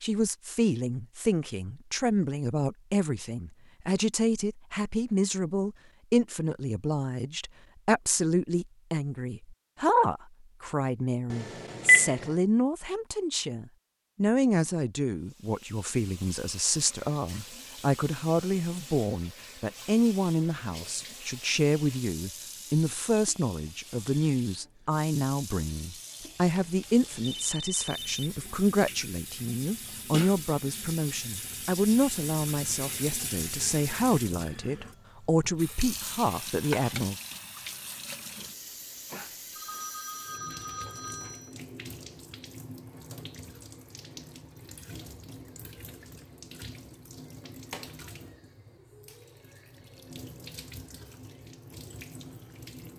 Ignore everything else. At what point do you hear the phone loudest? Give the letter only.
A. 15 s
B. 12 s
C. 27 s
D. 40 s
B.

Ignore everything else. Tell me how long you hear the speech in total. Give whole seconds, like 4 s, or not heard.
37 s.